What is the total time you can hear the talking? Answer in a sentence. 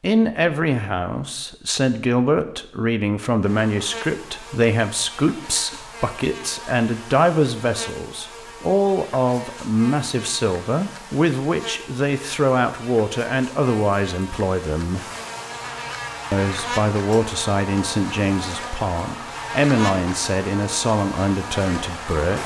You can hear the talking for 21 seconds altogether.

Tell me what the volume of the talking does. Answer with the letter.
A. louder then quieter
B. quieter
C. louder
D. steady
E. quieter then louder
D.